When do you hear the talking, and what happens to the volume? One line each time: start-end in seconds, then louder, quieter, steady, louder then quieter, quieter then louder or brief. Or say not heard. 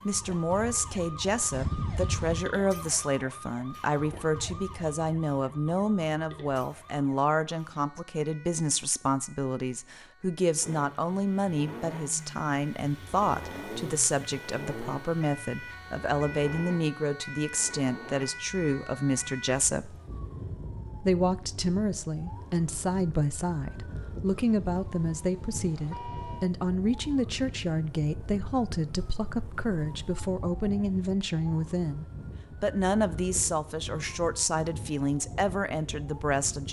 0.1-19.9 steady
21.0-36.6 steady.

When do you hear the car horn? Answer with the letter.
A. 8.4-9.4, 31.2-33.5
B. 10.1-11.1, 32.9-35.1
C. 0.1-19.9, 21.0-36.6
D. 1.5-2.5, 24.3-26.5
D.